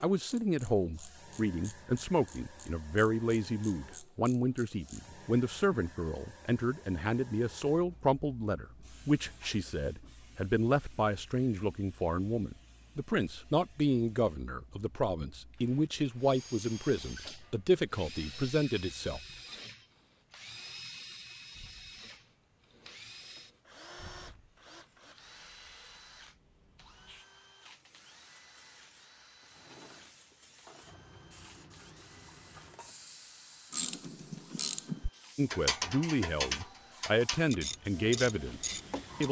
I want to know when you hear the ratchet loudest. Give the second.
36 s.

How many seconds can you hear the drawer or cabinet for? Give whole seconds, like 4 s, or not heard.
2 s.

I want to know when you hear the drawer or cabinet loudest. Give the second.
30 s.